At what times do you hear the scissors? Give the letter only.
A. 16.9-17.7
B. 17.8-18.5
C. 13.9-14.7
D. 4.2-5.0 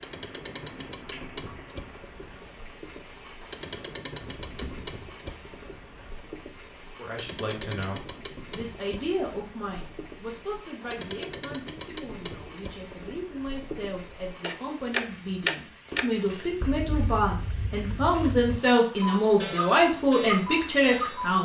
D.